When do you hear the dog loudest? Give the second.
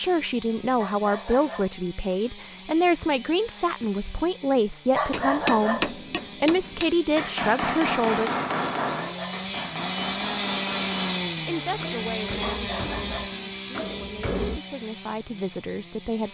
5 s.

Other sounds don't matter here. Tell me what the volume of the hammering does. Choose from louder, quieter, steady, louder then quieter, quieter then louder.
quieter.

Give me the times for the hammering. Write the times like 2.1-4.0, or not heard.
5.1-14.6.